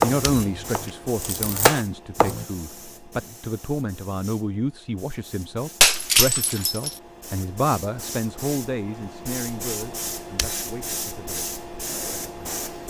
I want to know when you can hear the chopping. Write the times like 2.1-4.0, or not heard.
0.0-2.5.